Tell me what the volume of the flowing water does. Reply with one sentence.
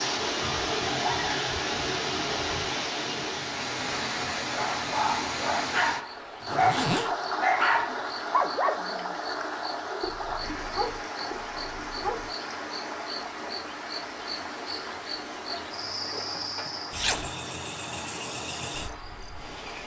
The volume of the flowing water goes down.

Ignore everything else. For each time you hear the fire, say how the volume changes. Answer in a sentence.
The fire can't be heard in this clip.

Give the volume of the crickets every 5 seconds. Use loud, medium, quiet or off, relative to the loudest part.
off, medium, loud, loud.